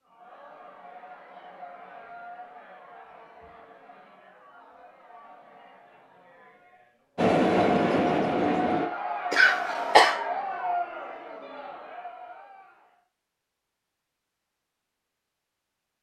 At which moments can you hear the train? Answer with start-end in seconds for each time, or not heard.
7.2-8.8.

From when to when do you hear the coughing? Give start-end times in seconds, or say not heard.
9.3-10.2.